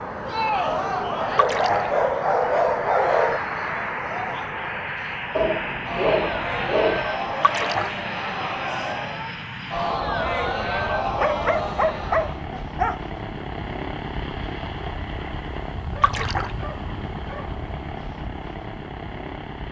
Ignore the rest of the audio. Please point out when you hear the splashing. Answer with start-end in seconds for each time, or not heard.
1.4-1.9, 7.4-8.0, 16.0-16.5.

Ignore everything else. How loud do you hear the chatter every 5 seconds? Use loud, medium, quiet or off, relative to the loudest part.
loud, loud, loud, off.